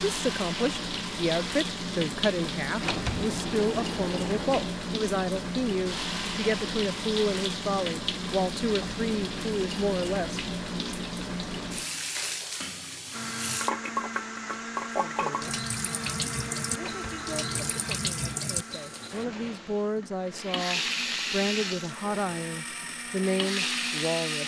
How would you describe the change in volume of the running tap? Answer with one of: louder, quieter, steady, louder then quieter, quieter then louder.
steady.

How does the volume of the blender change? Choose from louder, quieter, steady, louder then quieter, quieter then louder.
quieter then louder.